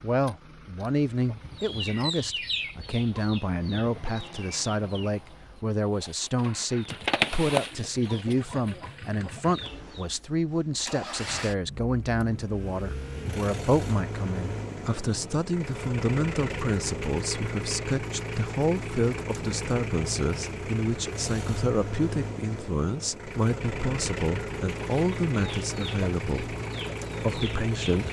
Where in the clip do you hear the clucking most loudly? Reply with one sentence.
The volume of the clucking peaks at 7 seconds.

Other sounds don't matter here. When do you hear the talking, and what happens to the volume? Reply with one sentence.
The talking can be heard from 0.0 to 26.6 s, at a steady volume; and briefly from 27.2 to 28.0 s.